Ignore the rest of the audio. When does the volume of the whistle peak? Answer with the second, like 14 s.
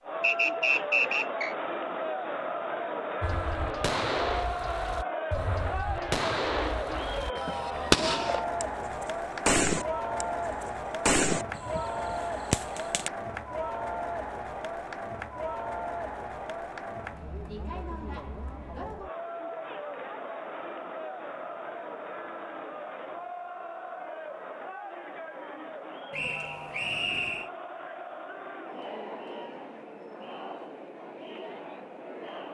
1 s.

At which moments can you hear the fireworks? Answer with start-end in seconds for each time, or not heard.
3.2-13.1.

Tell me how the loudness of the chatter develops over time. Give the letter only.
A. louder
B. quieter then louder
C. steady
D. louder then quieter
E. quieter
E.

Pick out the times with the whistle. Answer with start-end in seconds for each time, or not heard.
0.2-1.6, 26.1-27.5.